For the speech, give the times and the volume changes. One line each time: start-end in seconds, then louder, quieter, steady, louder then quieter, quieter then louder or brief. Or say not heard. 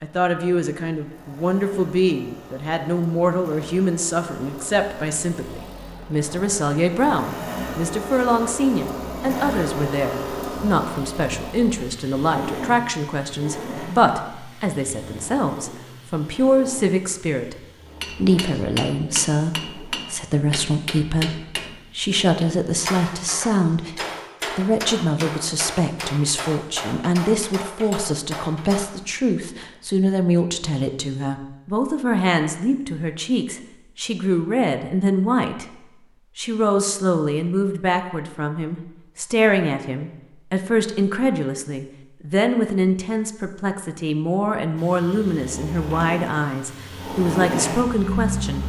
0.0-35.6 steady
36.4-48.6 steady.